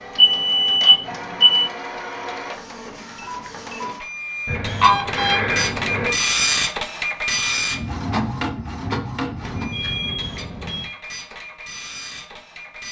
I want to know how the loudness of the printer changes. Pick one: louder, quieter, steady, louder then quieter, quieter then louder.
louder then quieter.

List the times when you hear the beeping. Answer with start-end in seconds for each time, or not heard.
0.1-1.6, 4.5-6.1, 9.4-10.9.